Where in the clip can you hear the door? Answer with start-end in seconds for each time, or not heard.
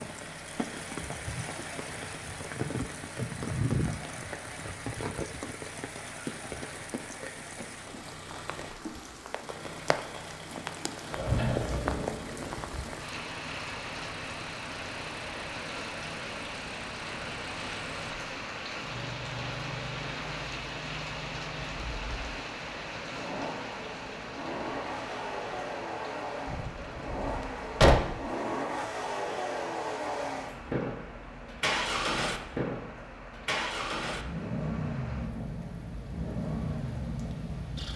11.1-12.6, 26.4-28.2.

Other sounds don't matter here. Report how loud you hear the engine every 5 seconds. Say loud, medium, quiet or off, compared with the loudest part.
quiet, quiet, quiet, medium, medium, loud, loud, loud.